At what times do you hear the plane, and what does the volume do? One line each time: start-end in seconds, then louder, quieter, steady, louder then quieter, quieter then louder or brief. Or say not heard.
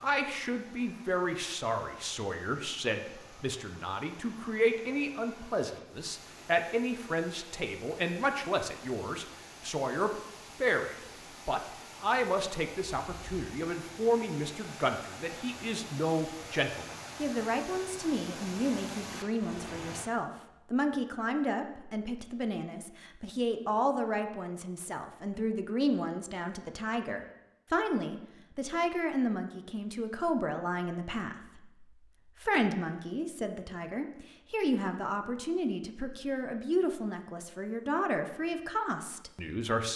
not heard.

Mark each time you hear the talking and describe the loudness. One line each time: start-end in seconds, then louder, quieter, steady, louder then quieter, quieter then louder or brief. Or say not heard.
0.0-39.9 steady.